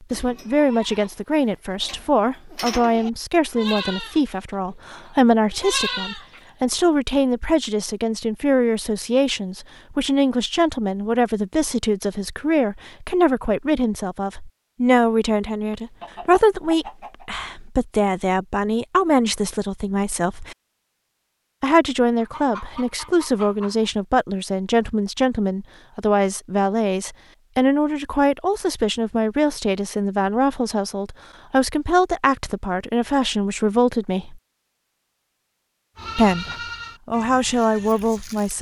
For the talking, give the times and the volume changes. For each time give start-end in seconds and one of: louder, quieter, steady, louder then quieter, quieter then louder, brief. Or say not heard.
0.1-20.6 steady
21.6-34.4 steady
36.1-38.5 brief.